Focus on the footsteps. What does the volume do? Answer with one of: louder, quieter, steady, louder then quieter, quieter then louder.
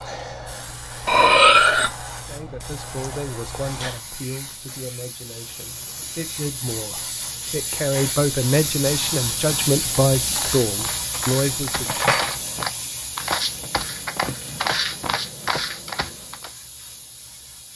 louder.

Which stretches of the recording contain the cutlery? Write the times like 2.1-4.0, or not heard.
1.1-1.9, 10.1-12.3.